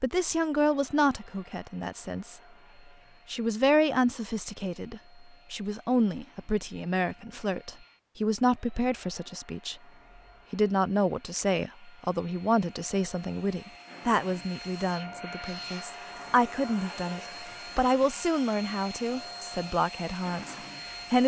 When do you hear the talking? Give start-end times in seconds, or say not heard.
0.0-2.4, 3.3-9.8, 10.5-21.2.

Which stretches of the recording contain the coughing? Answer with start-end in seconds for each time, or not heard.
not heard.